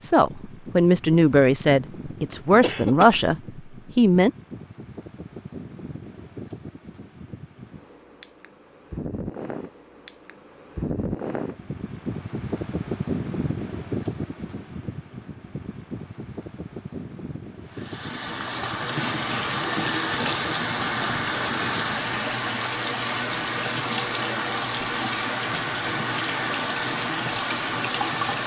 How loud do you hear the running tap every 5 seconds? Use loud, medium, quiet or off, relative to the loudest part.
off, off, off, loud, loud, loud.